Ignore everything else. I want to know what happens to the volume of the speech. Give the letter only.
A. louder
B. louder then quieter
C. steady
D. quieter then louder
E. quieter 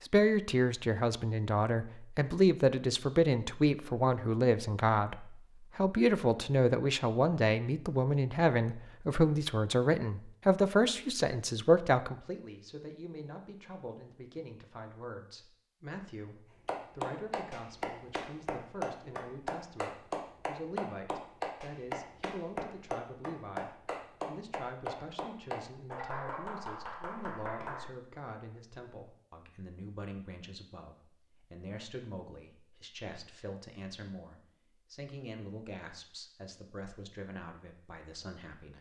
E.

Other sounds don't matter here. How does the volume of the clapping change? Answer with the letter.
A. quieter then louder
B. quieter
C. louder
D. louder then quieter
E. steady
E.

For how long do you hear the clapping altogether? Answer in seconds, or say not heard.
11 s.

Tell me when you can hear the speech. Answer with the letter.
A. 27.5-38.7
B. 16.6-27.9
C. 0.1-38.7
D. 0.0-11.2
C.